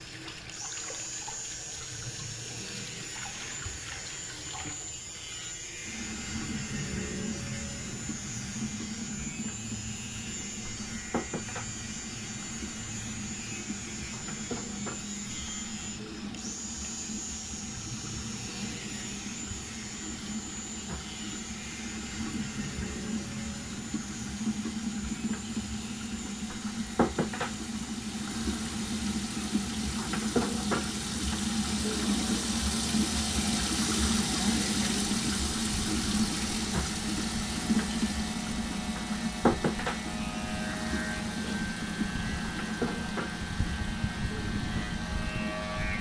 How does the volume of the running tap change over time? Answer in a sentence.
The volume of the running tap goes up.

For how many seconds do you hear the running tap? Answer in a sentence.
The running tap can be heard for 46 seconds in total.